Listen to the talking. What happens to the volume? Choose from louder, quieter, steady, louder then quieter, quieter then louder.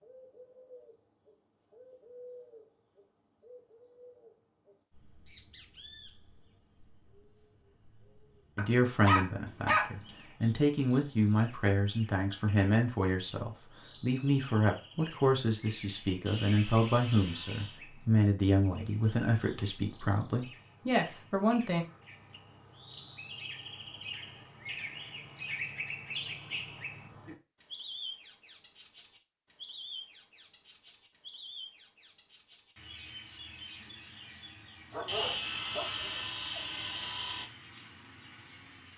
steady.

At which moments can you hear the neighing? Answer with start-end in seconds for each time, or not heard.
not heard.